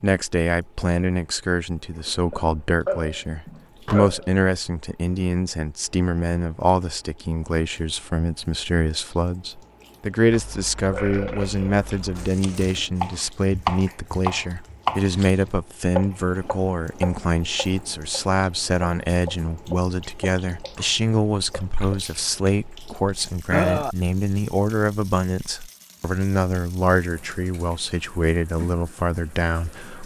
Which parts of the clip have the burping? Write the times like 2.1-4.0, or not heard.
2.3-4.3, 10.3-12.3, 23.5-23.9.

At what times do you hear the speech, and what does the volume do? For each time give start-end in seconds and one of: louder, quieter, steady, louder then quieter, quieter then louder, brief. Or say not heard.
0.0-30.0 steady.